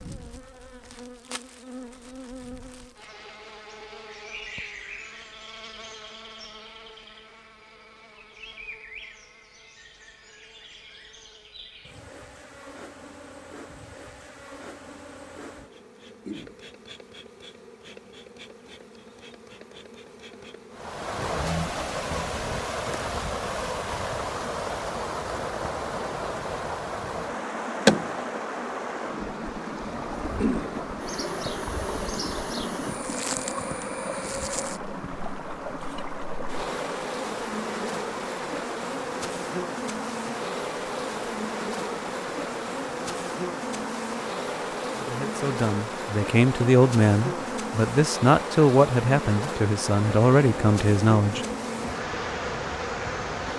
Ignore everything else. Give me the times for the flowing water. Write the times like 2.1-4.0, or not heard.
20.7-53.5.